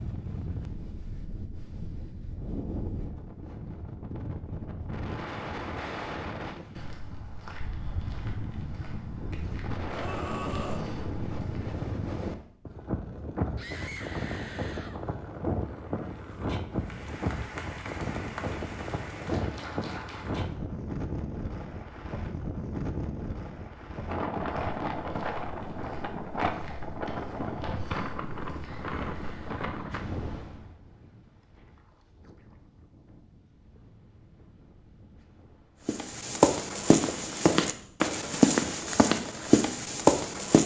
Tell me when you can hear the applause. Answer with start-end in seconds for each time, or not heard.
16.7-20.5.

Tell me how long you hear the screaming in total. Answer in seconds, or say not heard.
4 s.